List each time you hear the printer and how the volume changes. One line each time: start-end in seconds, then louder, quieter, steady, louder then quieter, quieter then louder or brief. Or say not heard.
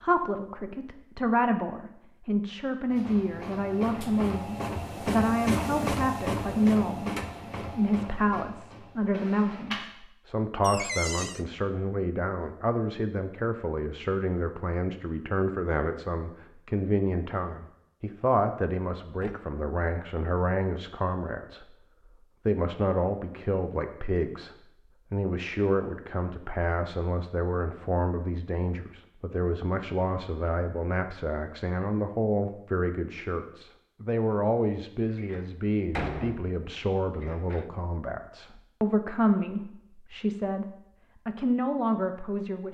2.9-9.8 louder then quieter.